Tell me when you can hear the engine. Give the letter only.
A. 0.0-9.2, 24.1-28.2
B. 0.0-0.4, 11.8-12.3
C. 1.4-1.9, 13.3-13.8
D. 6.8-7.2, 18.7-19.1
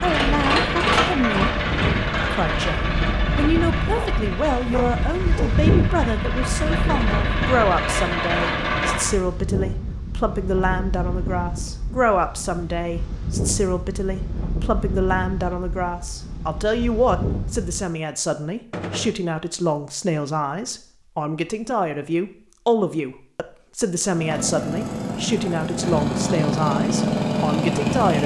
A.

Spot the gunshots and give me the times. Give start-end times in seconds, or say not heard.
6.8-7.2, 18.7-19.1.